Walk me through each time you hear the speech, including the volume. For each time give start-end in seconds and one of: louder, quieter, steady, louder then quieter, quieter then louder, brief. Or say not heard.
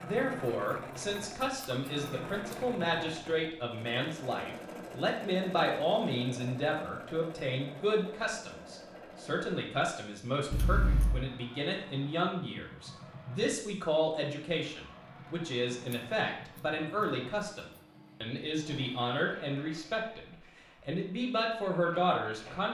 0.0-22.6 steady.